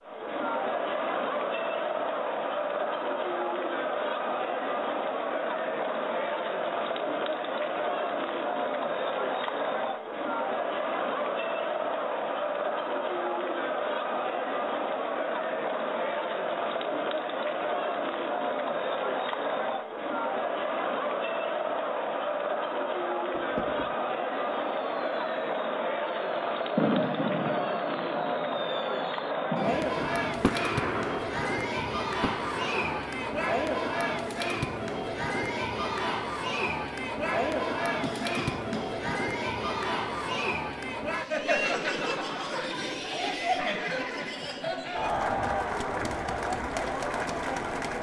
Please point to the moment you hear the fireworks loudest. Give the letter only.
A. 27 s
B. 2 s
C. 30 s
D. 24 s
A.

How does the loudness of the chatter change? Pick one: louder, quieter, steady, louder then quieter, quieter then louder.
steady.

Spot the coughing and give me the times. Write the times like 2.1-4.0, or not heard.
38.0-39.1.